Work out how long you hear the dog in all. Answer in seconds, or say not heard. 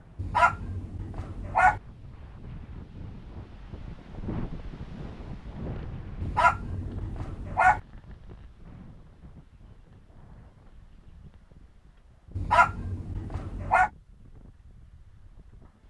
5 s.